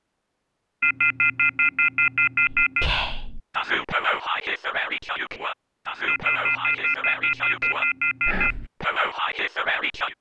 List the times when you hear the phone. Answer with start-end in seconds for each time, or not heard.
0.8-2.9, 6.0-8.6.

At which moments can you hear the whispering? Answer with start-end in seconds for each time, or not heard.
2.5-10.1.